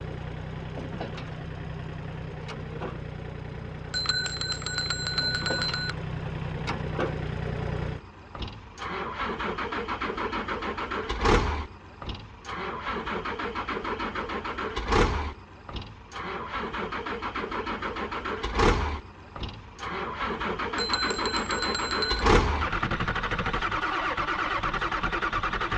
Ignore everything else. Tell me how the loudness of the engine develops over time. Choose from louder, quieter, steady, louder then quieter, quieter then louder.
louder.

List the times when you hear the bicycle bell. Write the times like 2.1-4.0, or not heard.
3.9-6.0, 20.8-22.2.